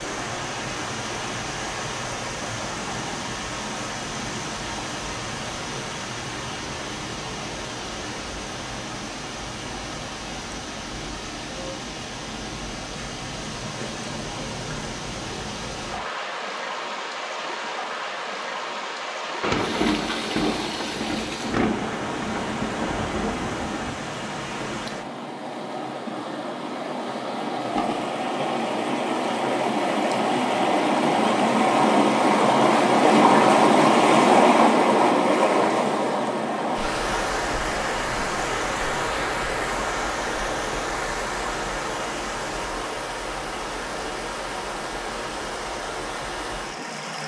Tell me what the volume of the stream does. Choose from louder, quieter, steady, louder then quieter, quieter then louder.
louder then quieter.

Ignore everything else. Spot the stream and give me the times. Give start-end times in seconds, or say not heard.
0.0-47.2.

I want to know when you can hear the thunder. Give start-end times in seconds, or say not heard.
19.4-23.9.